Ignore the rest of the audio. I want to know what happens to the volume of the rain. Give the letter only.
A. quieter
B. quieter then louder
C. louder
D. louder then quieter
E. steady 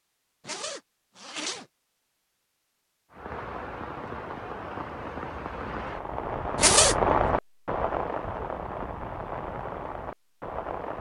D.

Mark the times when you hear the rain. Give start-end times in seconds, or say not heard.
3.1-10.9.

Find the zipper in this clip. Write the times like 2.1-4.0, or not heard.
0.5-1.6, 6.5-7.0.